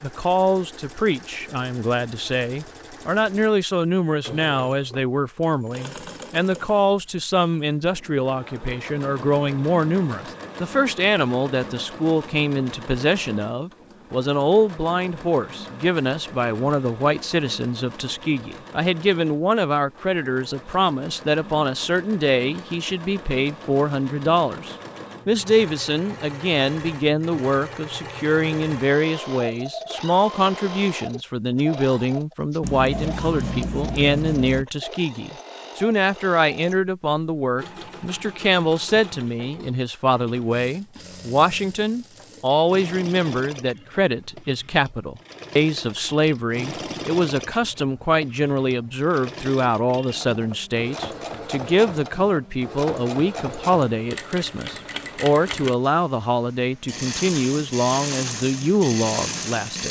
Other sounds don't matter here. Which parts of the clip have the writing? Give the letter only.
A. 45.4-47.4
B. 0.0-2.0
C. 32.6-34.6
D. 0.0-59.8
C.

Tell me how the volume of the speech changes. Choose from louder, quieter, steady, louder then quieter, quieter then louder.
steady.